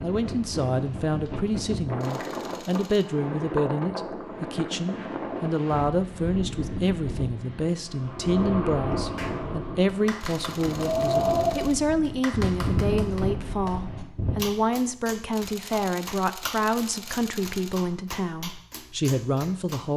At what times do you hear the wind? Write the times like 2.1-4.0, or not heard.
0.0-14.4.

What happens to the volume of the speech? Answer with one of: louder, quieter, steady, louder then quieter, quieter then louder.
steady.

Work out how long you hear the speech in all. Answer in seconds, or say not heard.
20 s.